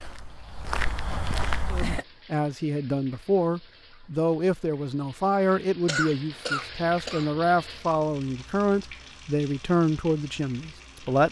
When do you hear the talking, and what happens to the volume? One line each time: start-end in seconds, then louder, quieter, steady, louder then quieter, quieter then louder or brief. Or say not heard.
1.7-11.2 steady.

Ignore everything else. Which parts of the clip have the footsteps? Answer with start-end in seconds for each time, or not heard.
0.0-2.0.